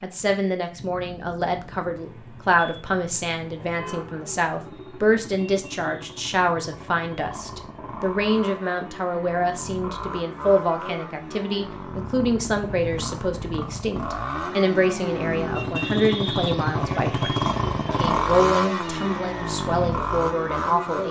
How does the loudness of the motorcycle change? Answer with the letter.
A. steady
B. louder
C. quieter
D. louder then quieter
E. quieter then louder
B.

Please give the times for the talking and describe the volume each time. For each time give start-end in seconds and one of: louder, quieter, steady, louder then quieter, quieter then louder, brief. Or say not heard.
0.0-21.0 steady.